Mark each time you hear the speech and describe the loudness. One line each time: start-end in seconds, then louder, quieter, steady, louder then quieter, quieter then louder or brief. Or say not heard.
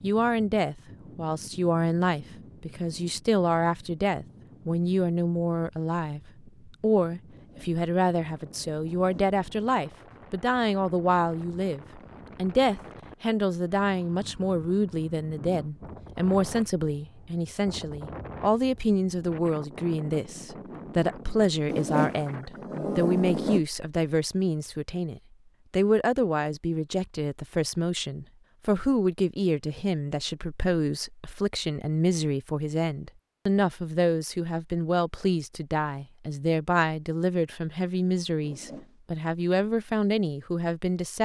0.0-41.2 steady.